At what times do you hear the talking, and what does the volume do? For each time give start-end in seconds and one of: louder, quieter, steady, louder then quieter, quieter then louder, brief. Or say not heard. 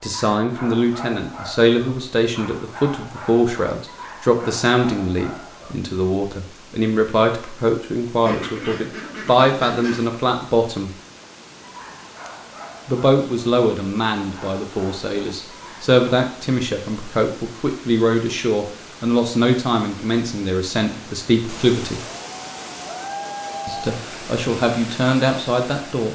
0.0-10.9 steady
12.8-22.1 steady
23.6-26.1 brief.